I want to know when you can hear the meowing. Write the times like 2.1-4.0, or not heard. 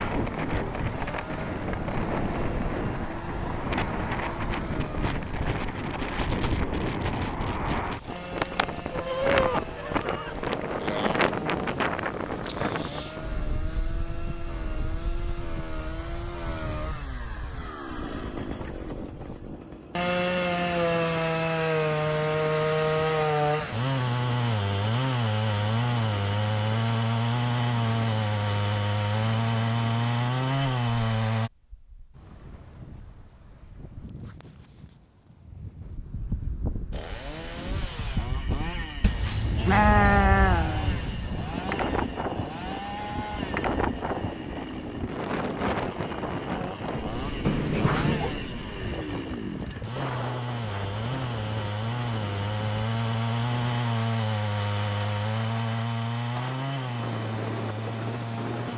47.4-48.4.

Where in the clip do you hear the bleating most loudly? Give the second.
40 s.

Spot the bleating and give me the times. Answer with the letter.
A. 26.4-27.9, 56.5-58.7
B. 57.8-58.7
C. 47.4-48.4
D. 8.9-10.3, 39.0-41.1
D.